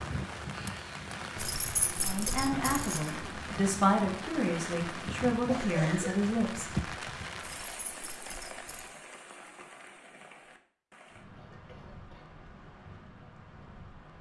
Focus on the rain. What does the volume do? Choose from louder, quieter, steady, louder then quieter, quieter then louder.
quieter.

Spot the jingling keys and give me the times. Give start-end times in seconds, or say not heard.
1.4-3.1, 7.5-9.0.